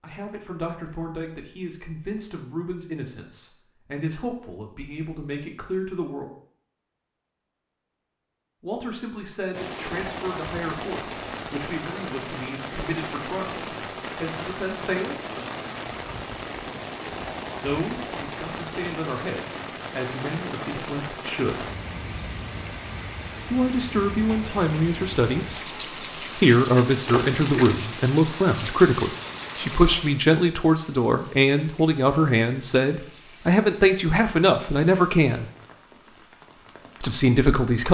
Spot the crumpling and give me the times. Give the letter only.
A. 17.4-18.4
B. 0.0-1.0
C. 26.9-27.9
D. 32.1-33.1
C.